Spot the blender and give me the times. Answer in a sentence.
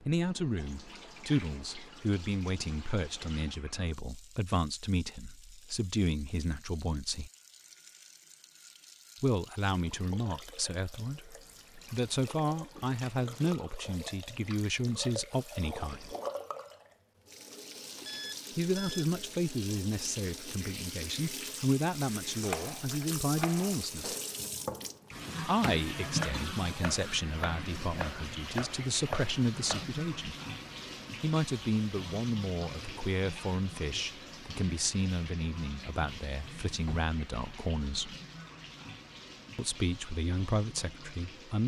The blender can't be heard in this clip.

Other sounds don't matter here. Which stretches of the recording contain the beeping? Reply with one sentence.
The beeping can be heard from 18.0 to 19.1 s.